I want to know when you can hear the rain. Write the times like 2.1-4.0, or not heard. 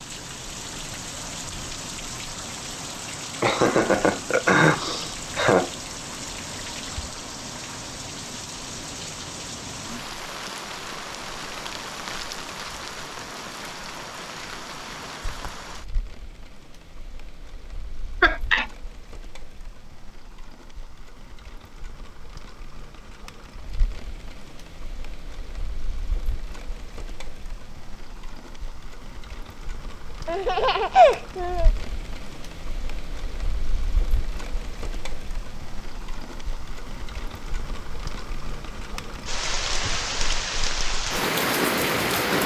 0.0-42.4.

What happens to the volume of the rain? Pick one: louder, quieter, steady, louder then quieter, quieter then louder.
quieter then louder.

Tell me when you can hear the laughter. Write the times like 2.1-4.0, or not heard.
3.4-5.7, 18.2-18.6, 30.2-31.7.